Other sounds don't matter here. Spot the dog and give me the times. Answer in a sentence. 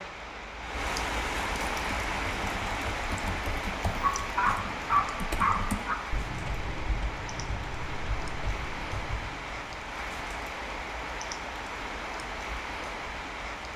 You can hear the dog from 4.0 to 6.0 s.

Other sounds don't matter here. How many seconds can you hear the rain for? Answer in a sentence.
You can hear the rain for 14 seconds altogether.